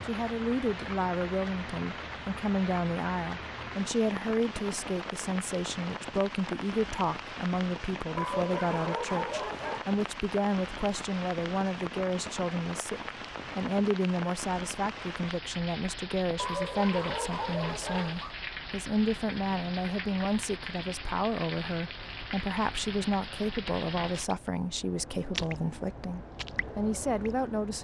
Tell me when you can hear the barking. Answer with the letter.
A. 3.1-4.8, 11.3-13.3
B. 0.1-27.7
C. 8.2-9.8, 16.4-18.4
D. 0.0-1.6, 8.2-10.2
C.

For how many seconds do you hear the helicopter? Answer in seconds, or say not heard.
not heard.